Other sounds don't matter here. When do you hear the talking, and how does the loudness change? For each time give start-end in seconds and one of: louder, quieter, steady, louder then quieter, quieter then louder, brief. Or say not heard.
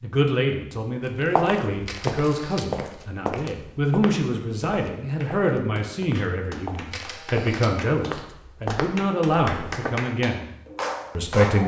0.0-10.6 steady
11.2-11.6 brief.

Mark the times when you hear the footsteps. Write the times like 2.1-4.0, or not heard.
1.1-9.9.